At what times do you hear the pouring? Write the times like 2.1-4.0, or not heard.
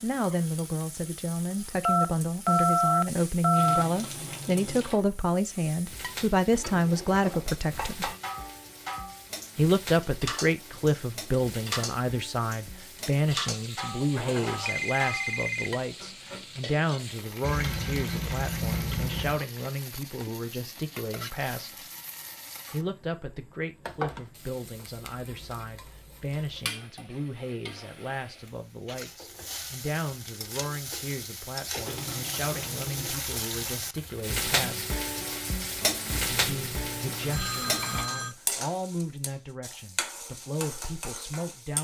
3.5-5.0, 17.4-19.4, 31.9-33.9.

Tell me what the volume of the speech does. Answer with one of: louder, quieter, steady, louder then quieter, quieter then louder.
quieter.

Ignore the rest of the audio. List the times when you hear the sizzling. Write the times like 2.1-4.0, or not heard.
0.0-41.7.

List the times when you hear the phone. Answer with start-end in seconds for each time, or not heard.
1.9-3.9, 14.2-15.7, 36.1-38.4.